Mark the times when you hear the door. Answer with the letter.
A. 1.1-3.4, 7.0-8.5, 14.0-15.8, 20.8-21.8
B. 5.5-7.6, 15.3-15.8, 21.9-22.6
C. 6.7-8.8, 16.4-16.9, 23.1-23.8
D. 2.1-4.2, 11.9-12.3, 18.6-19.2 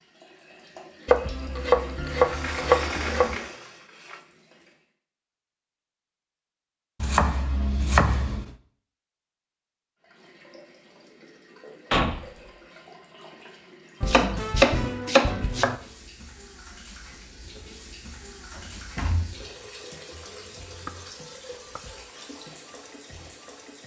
D.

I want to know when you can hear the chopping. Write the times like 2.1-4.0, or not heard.
1.1-3.4, 7.0-8.5, 14.0-15.8, 20.8-21.8.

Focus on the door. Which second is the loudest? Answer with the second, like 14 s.
12 s.